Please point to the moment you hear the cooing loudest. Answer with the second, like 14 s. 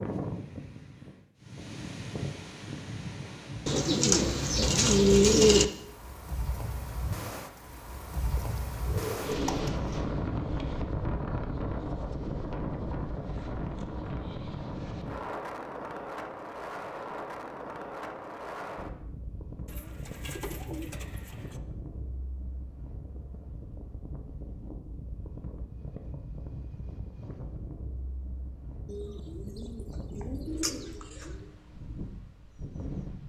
5 s.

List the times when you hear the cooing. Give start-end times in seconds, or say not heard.
3.6-5.7, 8.3-10.1, 19.6-21.6, 28.9-31.4.